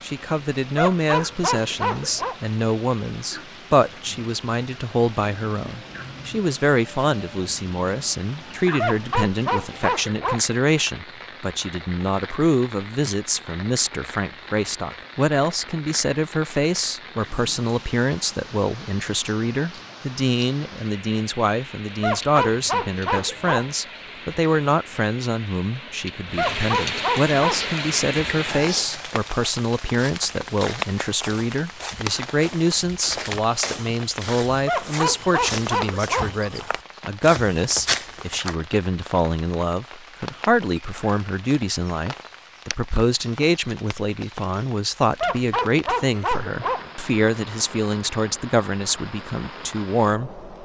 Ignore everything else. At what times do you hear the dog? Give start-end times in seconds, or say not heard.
0.8-2.4, 8.8-10.4, 22.0-23.7, 26.4-27.9, 34.6-36.4, 45.2-46.9.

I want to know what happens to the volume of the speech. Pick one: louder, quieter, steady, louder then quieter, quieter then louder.
steady.